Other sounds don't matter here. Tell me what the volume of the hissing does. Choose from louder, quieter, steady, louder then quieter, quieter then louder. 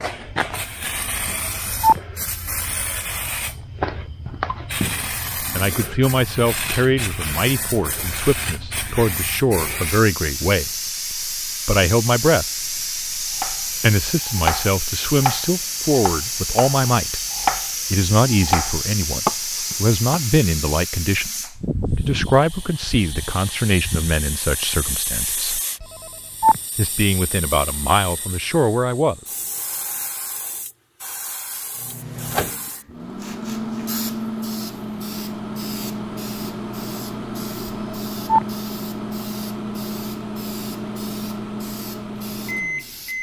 quieter.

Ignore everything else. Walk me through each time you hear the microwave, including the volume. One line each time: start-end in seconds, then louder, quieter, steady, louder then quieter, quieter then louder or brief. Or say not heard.
31.8-43.1 steady.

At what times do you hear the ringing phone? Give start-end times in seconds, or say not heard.
1.2-2.0, 25.8-26.6, 37.6-38.5.